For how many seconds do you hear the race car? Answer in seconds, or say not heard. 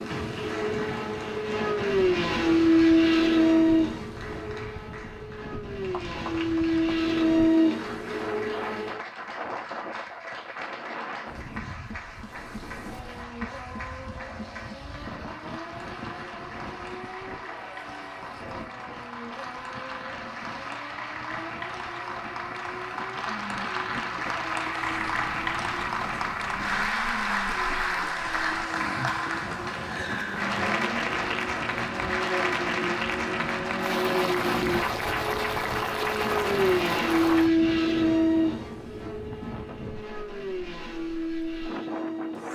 39 s.